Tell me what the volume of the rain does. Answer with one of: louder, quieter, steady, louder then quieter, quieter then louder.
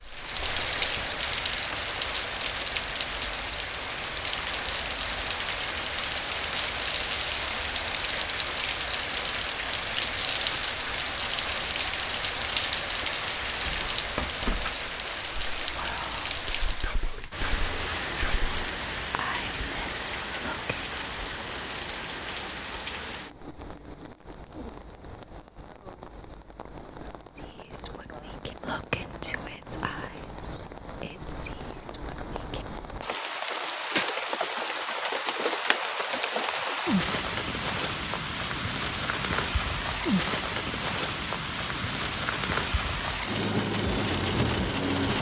quieter then louder.